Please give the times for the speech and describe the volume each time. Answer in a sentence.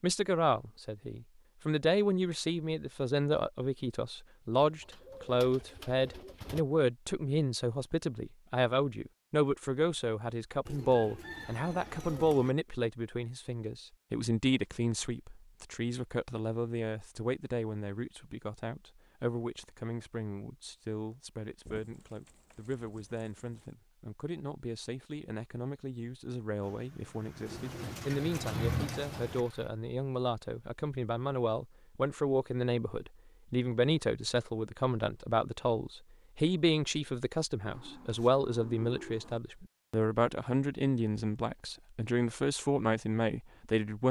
The speech can be heard from 0.0 to 44.0 s, getting quieter then louder.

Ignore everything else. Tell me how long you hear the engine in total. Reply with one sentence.
You can hear the engine for 3 seconds altogether.